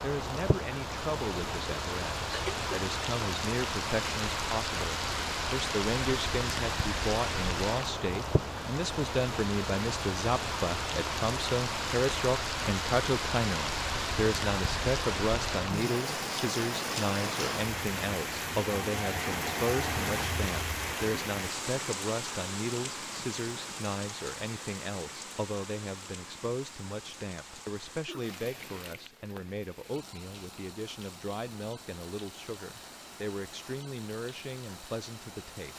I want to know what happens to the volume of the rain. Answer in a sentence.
The volume of the rain goes down.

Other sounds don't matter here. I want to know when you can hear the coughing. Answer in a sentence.
The coughing can be heard from 2.3 to 2.9 s and from 27.6 to 28.4 s.